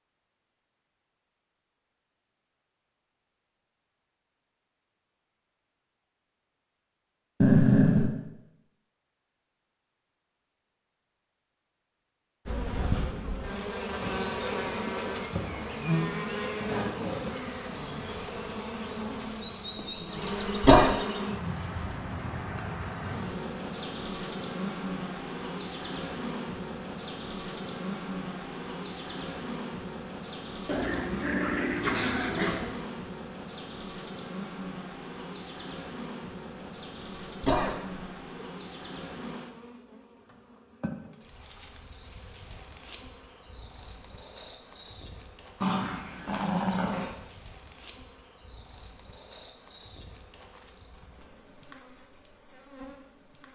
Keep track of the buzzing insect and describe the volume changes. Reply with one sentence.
The volume of the buzzing insect goes down.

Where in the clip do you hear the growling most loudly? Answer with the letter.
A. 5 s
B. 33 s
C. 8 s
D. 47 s
C.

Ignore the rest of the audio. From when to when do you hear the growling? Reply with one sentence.
You can hear the growling from 7.4 to 8.1 s, from 30.6 to 32.7 s and from 45.6 to 47.1 s.